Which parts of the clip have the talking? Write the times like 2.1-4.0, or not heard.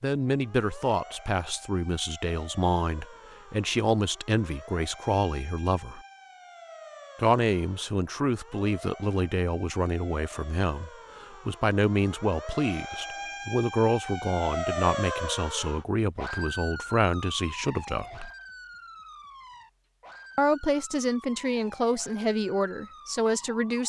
0.0-6.0, 7.2-18.3, 20.4-23.8.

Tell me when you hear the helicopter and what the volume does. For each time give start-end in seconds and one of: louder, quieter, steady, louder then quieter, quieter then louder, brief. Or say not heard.
not heard.